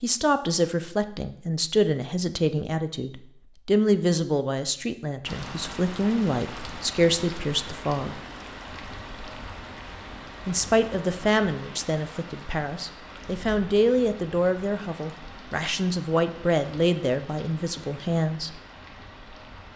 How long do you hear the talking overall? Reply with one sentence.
You can hear the talking for 16 seconds altogether.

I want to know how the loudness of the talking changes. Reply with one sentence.
The volume of the talking stays about the same.